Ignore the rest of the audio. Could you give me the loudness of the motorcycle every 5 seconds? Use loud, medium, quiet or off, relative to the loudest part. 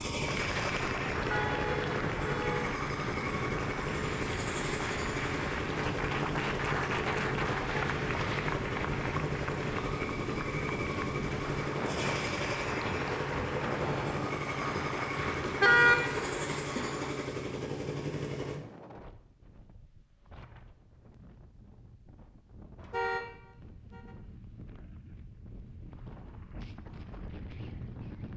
loud, loud, loud, loud, off, off.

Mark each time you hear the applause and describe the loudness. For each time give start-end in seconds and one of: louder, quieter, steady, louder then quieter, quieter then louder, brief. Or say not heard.
0.1-17.2 steady.